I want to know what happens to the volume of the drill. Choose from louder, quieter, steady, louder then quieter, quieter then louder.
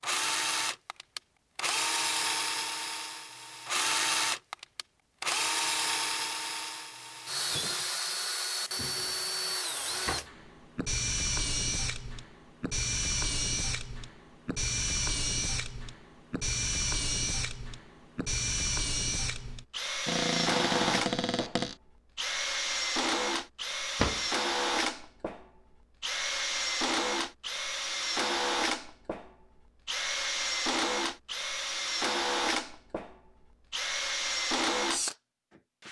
steady.